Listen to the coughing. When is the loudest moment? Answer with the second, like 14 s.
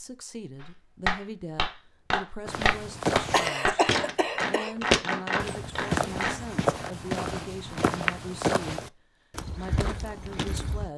4 s.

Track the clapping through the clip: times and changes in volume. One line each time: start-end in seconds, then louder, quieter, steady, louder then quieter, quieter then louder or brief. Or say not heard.
0.6-6.3 steady.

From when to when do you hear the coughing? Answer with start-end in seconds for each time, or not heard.
3.3-4.8.